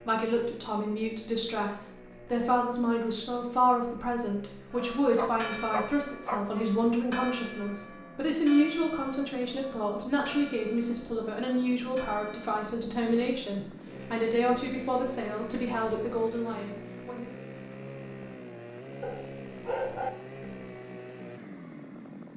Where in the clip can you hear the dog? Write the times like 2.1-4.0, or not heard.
4.8-6.7, 19.0-20.1.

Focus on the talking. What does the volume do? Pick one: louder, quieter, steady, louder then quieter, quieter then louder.
steady.